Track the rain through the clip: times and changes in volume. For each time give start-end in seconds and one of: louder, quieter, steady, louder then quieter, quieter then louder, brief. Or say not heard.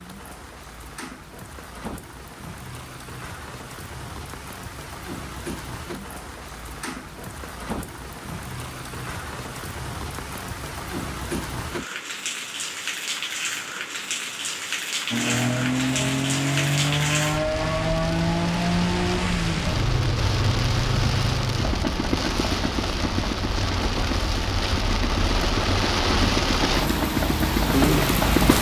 0.0-28.5 louder.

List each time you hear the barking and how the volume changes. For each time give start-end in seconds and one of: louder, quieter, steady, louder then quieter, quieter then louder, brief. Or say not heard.
not heard.